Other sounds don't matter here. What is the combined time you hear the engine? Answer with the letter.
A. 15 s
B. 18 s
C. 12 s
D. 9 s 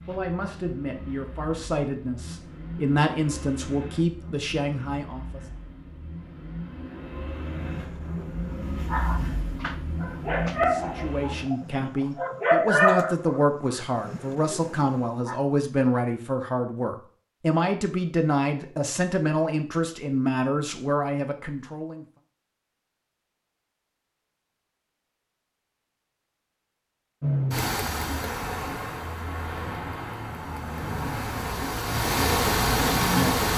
B.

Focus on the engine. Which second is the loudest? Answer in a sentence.
The volume of the engine peaks at 33 seconds.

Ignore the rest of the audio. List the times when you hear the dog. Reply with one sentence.
You can hear the dog from 7.7 to 13.4 s and from 14.1 to 15.3 s.